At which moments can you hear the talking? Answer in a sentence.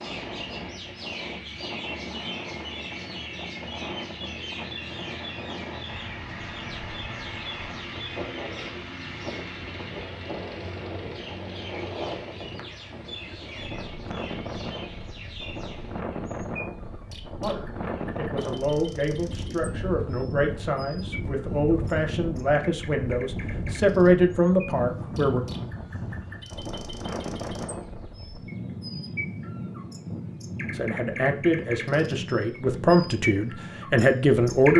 You can hear the talking from 17.4 to 25.4 s and from 30.7 to 34.7 s.